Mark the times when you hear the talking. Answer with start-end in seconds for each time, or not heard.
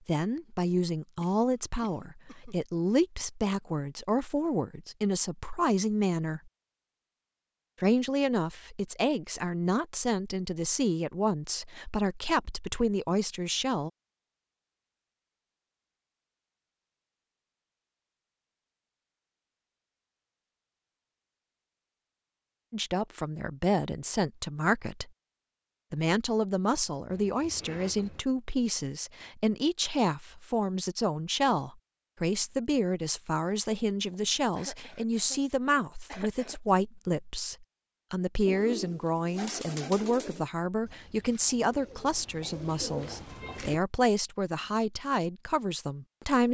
0.1-6.5, 7.8-13.9, 22.7-25.1, 25.9-46.5.